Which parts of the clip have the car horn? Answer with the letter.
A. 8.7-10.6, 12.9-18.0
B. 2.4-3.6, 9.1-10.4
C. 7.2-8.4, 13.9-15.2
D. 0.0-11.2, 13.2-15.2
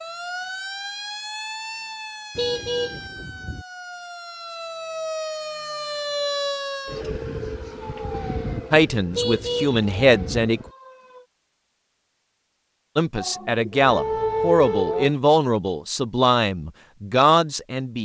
B.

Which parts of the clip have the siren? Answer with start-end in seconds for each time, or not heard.
0.0-11.2, 13.2-15.2.